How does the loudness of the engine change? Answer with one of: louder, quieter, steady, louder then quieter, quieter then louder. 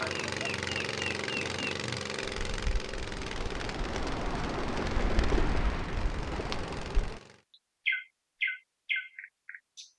quieter.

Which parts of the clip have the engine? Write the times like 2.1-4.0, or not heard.
0.0-7.4.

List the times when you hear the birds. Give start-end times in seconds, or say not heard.
0.0-7.2, 7.8-9.9.